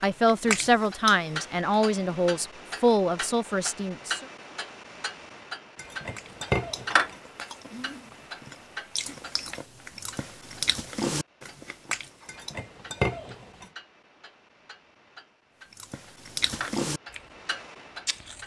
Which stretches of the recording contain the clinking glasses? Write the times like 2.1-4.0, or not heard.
5.8-7.2, 12.2-13.7.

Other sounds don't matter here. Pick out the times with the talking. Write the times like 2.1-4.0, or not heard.
0.0-4.2.